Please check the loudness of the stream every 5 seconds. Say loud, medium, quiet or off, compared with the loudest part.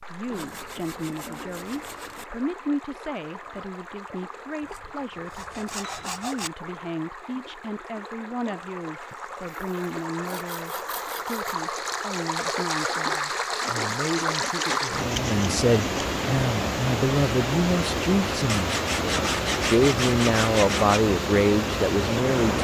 quiet, quiet, loud, loud, loud.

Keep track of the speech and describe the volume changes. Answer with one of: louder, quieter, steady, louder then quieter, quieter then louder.
louder.